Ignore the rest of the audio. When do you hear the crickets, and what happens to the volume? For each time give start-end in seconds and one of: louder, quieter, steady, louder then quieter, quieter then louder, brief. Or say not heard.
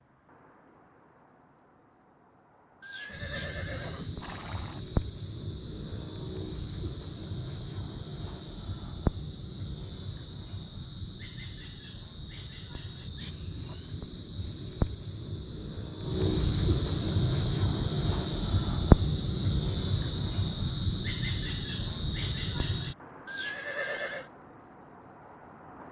0.0-25.8 louder then quieter.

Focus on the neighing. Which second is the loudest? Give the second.
24 s.